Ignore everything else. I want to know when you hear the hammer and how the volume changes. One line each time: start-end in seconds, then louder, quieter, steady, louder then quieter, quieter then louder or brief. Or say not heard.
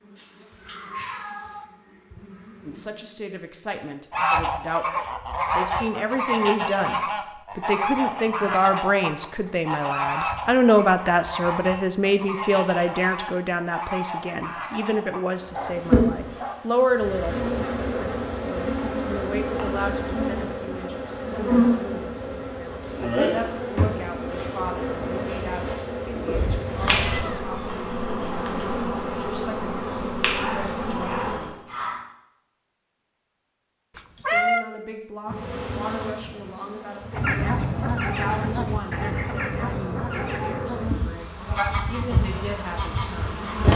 not heard.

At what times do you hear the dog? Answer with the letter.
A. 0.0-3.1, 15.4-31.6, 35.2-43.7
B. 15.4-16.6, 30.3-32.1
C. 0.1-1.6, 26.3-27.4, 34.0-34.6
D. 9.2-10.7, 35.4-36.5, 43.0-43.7
B.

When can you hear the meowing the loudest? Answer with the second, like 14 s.
34 s.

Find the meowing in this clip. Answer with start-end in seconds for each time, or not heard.
0.1-1.6, 26.3-27.4, 34.0-34.6.